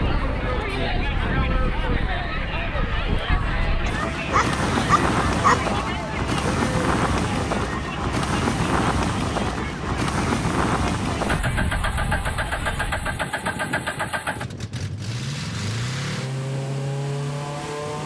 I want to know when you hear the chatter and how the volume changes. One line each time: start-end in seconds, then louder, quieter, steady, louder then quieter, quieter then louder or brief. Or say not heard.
0.0-12.9 quieter.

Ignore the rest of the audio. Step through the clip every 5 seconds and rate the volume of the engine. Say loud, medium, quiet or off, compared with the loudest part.
off, off, loud, loud.